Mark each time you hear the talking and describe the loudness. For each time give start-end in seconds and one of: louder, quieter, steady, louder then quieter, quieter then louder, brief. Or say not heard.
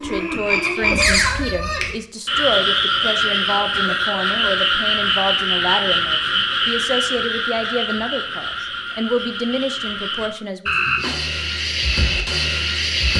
0.0-10.7 steady.